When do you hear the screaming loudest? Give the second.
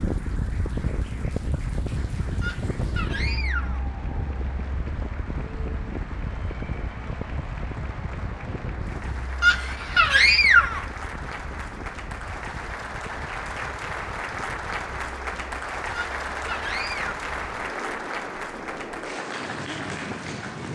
10 s.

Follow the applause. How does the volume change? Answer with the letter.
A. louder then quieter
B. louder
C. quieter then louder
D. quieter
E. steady
B.